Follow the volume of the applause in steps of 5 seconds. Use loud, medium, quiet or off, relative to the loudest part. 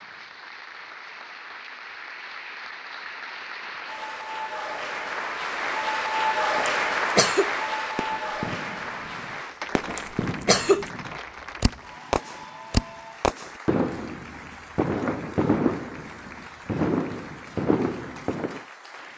medium, loud, quiet, quiet.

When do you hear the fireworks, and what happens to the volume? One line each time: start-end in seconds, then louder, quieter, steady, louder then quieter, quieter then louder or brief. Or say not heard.
8.0-18.6 louder.